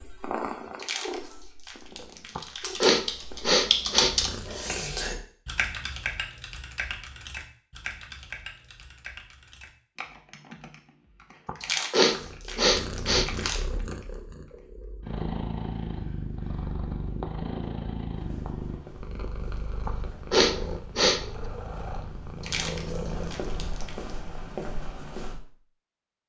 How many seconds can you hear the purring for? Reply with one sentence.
You can hear the purring for 17 seconds altogether.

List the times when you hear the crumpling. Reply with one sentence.
The crumpling can be heard from 0.8 to 2.8 s, from 11.6 to 13.6 s and from 22.4 to 23.9 s.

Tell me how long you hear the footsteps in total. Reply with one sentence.
The footsteps can be heard for 7 seconds in total.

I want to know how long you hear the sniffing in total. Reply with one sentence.
You can hear the sniffing for 5 seconds altogether.